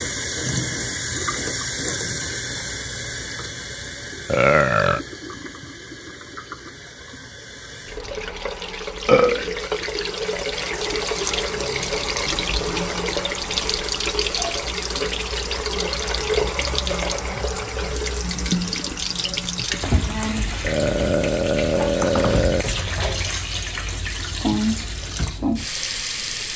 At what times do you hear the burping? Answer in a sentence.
The burping can be heard from 4.3 to 5.0 s, from 9.1 to 9.5 s and from 20.6 to 22.6 s.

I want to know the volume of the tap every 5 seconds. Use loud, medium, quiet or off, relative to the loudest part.
loud, medium, loud, loud, loud, loud.